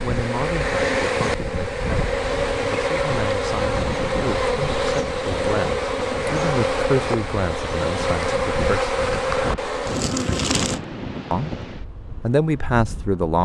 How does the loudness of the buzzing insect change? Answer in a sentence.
The loudness of the buzzing insect goes down.